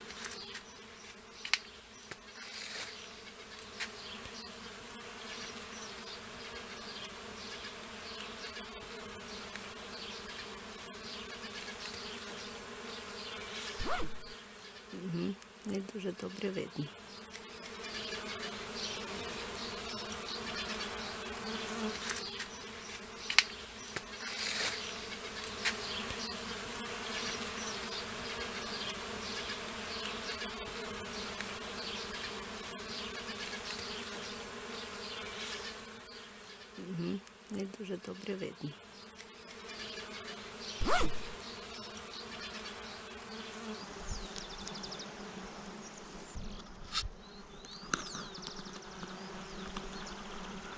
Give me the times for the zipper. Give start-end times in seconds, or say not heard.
13.8-14.3, 40.8-41.4.